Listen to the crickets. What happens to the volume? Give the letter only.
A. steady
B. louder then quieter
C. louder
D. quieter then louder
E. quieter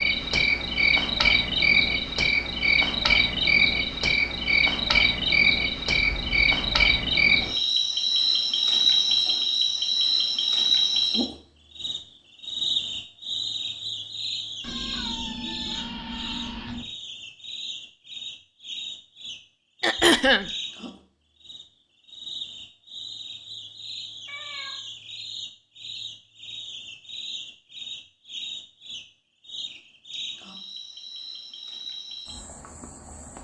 E.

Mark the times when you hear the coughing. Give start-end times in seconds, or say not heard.
19.8-20.5.